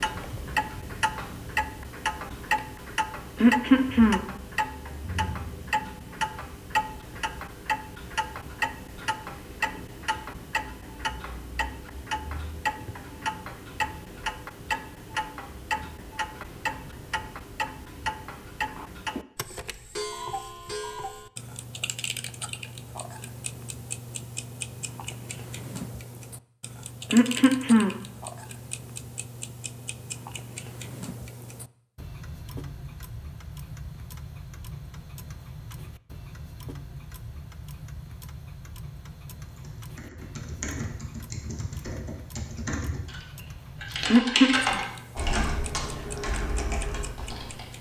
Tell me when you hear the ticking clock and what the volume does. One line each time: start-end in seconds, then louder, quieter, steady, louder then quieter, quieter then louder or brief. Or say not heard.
0.0-47.7 quieter.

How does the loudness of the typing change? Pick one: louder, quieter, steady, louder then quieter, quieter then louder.
louder then quieter.